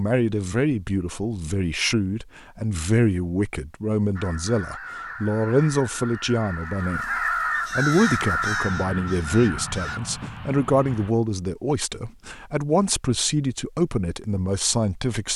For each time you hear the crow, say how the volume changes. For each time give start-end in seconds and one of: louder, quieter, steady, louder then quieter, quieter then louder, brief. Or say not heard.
4.2-10.3 louder then quieter.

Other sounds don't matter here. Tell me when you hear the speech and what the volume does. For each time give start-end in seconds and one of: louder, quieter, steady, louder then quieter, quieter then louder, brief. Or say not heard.
0.0-15.3 steady.